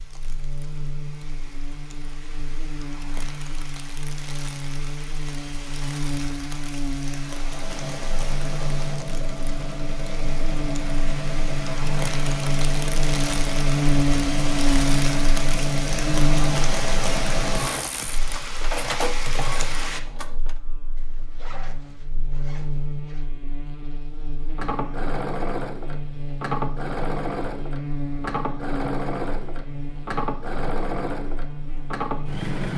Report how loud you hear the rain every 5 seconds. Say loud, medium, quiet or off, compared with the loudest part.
quiet, medium, loud, loud, off, off, off.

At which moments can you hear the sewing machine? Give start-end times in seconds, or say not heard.
7.4-20.6, 24.6-32.7.